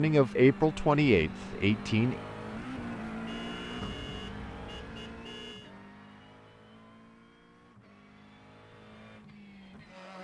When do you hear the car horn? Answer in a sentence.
You can hear the car horn from 3.2 to 5.8 s.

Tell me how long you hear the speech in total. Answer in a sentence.
You can hear the speech for 2 seconds altogether.